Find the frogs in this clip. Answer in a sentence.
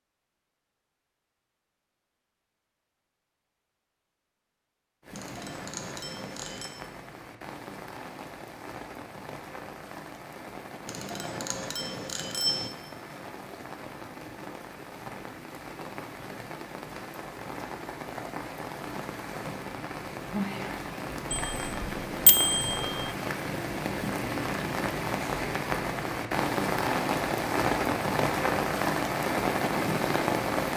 The frogs can't be heard in this clip.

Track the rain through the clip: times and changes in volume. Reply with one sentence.
You can hear the rain from 5.0 to 30.7 s, getting louder.